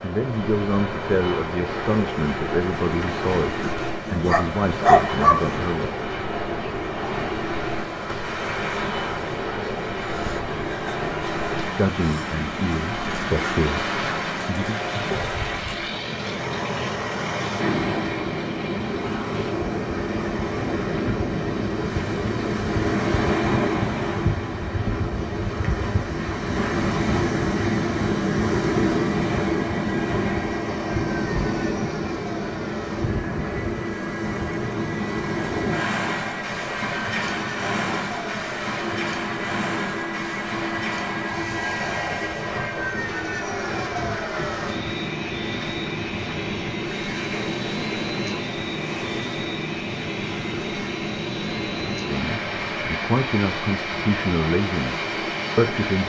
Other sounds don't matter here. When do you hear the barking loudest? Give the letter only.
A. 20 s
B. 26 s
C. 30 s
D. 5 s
D.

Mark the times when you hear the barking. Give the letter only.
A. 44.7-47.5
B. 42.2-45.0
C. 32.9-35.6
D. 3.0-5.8
D.